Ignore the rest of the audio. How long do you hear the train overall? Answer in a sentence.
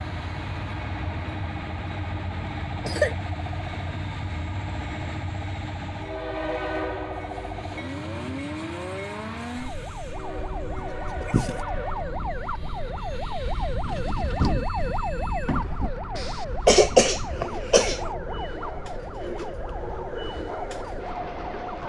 The train can be heard for 22 seconds in total.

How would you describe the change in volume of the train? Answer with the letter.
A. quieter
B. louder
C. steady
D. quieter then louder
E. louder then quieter
D.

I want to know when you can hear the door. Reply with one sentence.
You can hear the door from 13.8 to 15.9 s.